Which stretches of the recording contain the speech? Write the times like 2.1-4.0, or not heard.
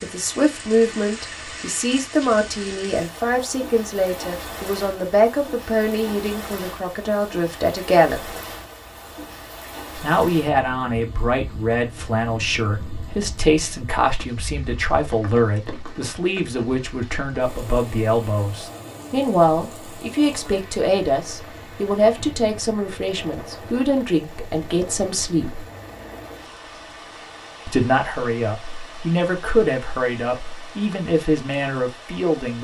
0.0-8.4, 10.0-25.6, 27.6-32.6.